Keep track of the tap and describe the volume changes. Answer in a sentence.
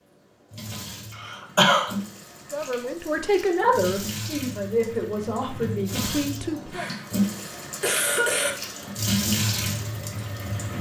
The loudness of the tap goes up.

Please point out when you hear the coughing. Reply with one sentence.
You can hear the coughing from 1.1 to 1.9 s and from 6.7 to 8.6 s.